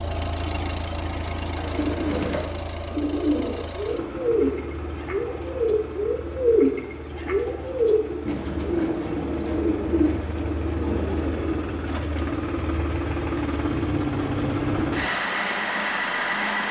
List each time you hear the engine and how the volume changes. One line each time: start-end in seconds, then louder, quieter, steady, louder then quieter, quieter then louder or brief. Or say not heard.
0.0-16.6 louder.